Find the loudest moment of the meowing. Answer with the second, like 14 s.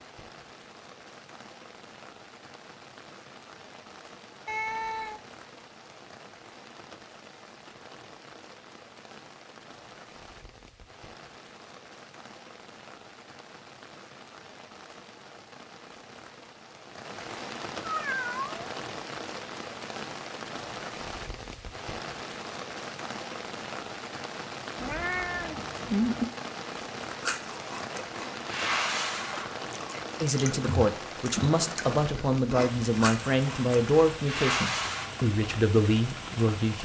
26 s.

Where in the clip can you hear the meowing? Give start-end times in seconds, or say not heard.
4.5-5.2, 17.8-18.7, 24.8-26.3.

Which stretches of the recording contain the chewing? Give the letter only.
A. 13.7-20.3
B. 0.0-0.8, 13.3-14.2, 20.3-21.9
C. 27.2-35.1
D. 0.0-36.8
C.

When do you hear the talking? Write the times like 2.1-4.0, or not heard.
30.2-36.8.